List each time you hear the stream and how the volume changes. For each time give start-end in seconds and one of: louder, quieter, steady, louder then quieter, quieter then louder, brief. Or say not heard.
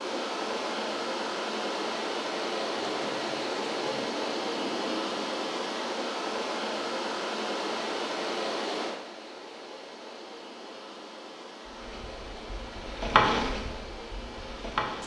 0.0-15.0 quieter.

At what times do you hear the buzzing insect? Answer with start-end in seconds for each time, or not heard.
11.7-15.0.